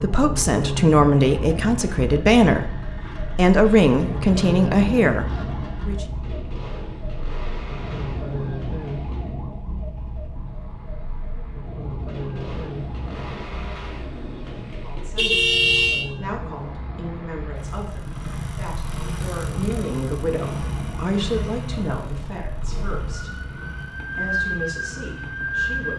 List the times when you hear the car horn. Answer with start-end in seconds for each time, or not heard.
15.2-16.1.